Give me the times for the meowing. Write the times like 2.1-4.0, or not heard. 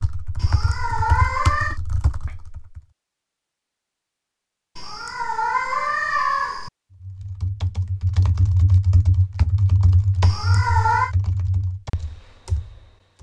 0.3-1.8, 4.8-6.7, 10.2-11.2.